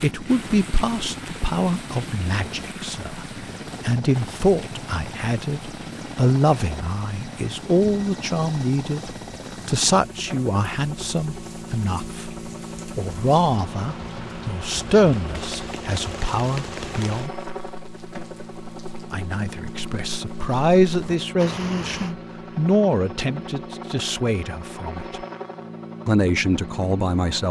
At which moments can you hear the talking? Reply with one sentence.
The talking can be heard from 0.0 to 17.3 s, from 19.1 to 25.2 s and from 26.1 to 27.4 s.